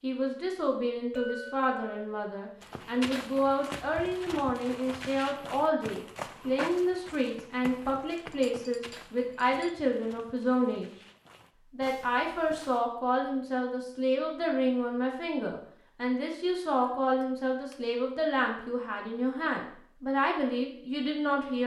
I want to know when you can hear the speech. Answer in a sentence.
The speech can be heard from 0.0 to 10.9 s and from 11.7 to 21.6 s.